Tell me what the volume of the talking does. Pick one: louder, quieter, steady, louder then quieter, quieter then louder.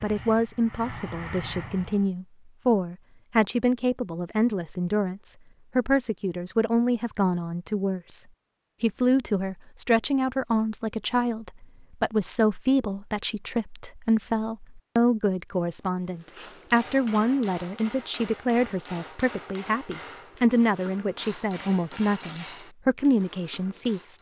steady.